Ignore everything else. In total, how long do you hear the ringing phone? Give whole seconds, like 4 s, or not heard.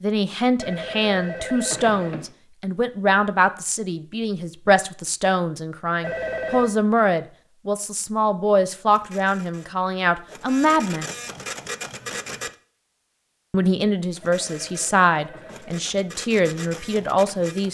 4 s.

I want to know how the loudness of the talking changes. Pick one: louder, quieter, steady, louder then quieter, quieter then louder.
steady.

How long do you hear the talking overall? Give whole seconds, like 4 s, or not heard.
15 s.